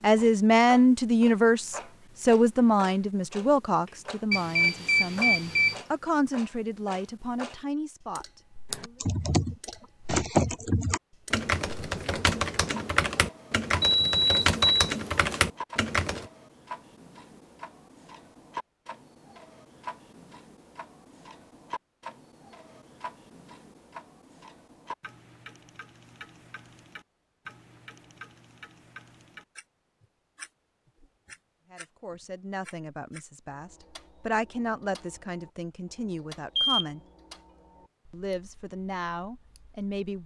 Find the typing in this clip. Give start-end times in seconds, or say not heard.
8.7-16.2.